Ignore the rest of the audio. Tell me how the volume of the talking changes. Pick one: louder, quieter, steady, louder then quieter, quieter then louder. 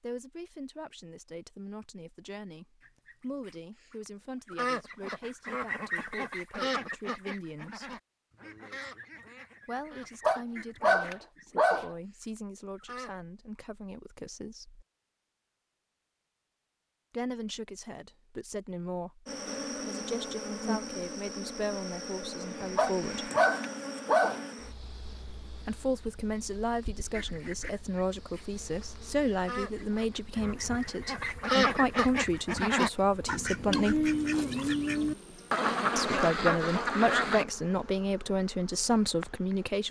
louder.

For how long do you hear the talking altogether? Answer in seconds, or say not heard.
32 s.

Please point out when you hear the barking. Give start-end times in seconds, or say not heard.
10.2-11.9, 22.8-24.4.